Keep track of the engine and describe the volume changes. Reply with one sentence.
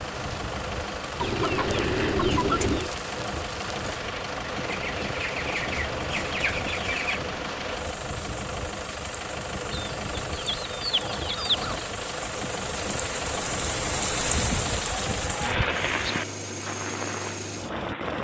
The volume of the engine stays about the same.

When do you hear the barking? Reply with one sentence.
The barking can't be heard in this clip.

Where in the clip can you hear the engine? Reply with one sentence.
You can hear the engine from 0.0 to 18.1 s.